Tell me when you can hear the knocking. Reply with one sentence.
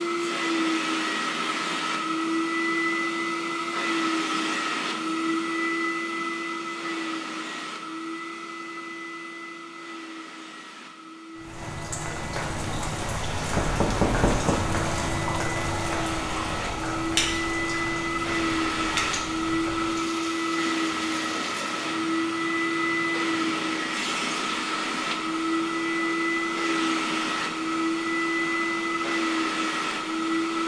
The knocking can be heard from 13.5 to 14.6 s.